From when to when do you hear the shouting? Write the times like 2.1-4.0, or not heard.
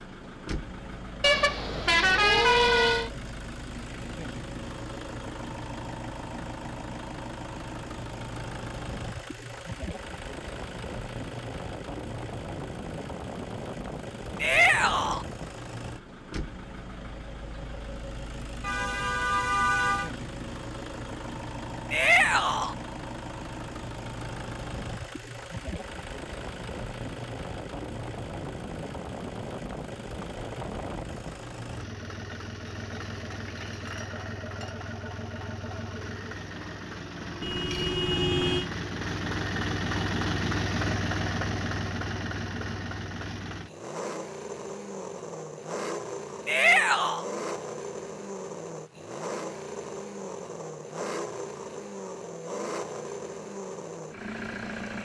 14.4-15.2, 21.9-22.8, 46.5-47.2.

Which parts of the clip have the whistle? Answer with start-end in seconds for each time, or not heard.
not heard.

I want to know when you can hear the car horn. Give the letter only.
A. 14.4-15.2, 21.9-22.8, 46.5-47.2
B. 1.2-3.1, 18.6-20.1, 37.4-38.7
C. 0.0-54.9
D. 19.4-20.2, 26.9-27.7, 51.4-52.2
B.